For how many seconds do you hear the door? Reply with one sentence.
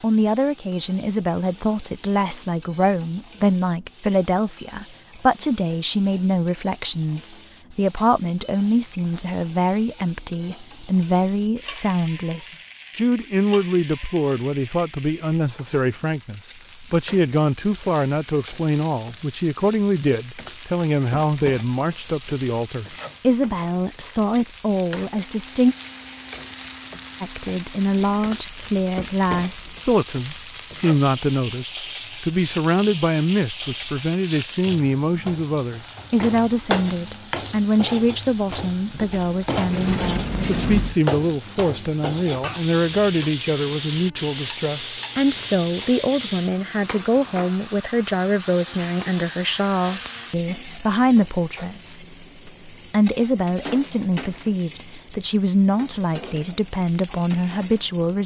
The door can be heard for 2 seconds in total.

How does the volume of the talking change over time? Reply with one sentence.
The loudness of the talking stays about the same.